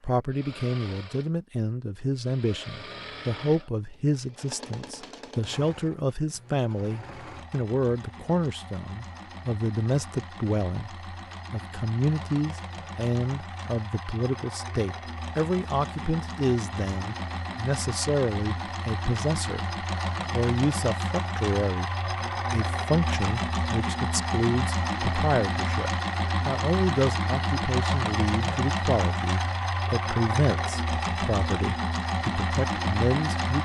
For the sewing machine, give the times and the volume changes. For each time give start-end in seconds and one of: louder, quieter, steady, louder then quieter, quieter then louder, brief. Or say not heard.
0.0-33.5 louder.